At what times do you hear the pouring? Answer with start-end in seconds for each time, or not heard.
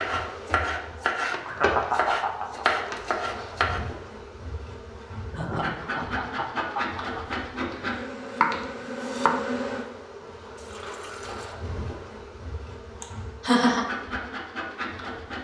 10.6-11.6.